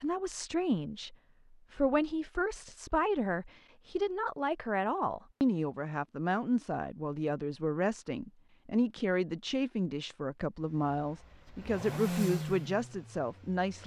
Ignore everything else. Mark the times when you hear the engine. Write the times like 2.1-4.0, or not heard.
10.6-13.8.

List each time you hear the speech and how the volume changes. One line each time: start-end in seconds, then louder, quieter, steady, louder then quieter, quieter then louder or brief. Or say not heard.
0.0-13.8 steady.